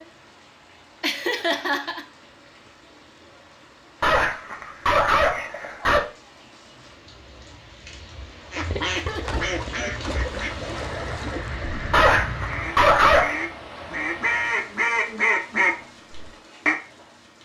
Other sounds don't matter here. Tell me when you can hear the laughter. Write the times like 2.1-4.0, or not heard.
1.0-2.0, 8.9-9.4.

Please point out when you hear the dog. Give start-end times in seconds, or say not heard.
4.0-6.0, 11.9-13.4.